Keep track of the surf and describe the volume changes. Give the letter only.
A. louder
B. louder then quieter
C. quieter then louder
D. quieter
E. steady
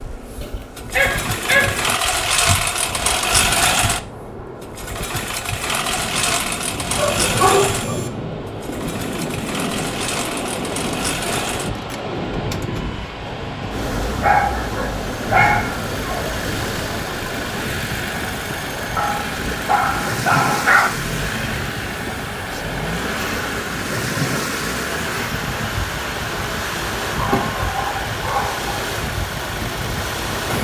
A.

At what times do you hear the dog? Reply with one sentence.
You can hear the dog from 0.4 to 2.5 s, from 7.0 to 8.1 s, from 14.2 to 16.4 s, from 18.9 to 20.9 s and from 27.1 to 28.7 s.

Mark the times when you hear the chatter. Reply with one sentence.
The chatter can't be heard in this clip.